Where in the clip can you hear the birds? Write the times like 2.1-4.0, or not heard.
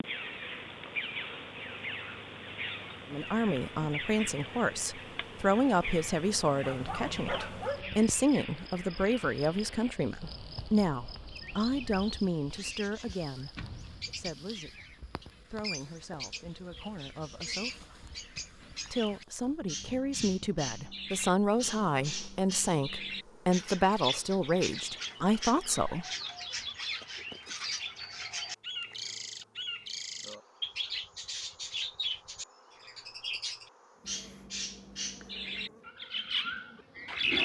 0.0-37.3.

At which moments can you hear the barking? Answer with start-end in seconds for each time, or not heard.
6.6-8.1.